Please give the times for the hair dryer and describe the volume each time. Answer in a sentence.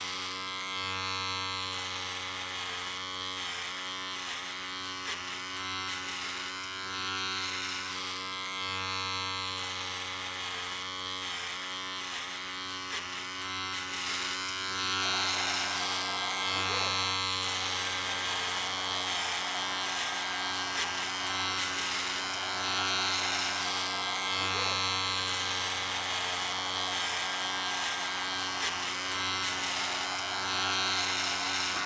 You can hear the hair dryer from 14.9 to 31.8 s, at a steady volume.